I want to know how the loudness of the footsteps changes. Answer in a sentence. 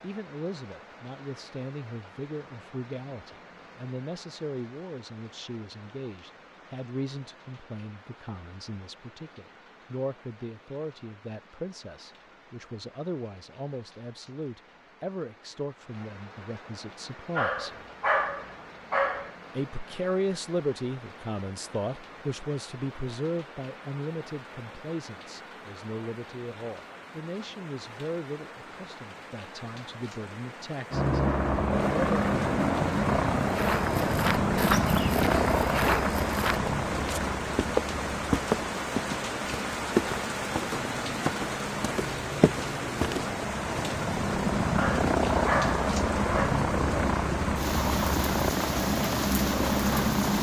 The volume of the footsteps stays about the same.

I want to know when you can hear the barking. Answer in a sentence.
You can hear the barking from 17.4 to 19.3 s and from 44.8 to 46.6 s.